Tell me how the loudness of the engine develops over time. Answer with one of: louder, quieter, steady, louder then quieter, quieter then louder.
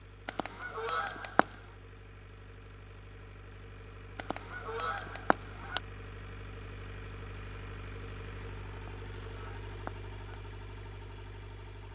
louder.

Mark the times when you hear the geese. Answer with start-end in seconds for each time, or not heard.
0.2-1.6, 4.2-5.8, 8.8-10.4.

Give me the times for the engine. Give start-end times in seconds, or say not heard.
0.0-11.9.